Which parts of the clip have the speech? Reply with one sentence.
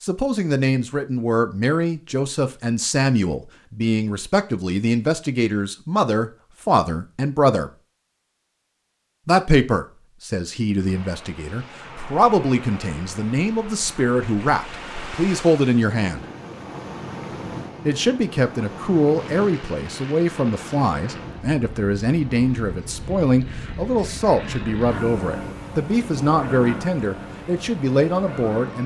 The speech can be heard from 0.0 to 7.7 s, from 9.2 to 16.2 s and from 17.9 to 28.8 s.